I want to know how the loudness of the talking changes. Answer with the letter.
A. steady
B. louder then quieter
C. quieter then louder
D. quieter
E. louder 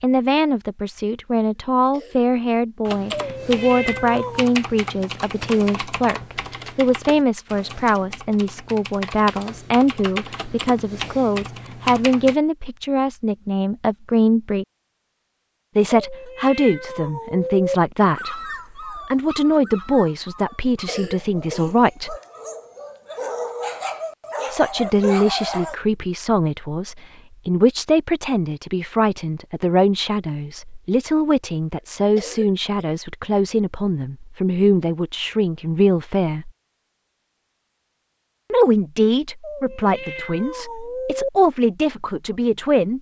A.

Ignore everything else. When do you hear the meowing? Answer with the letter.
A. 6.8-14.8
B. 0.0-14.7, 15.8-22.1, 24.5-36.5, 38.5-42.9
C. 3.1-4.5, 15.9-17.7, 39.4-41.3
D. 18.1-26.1
C.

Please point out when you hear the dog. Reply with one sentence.
The dog can be heard from 18.1 to 26.1 s.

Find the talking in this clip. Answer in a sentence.
You can hear the talking from 0.0 to 14.7 s, from 15.8 to 22.1 s, from 24.5 to 36.5 s and from 38.5 to 42.9 s.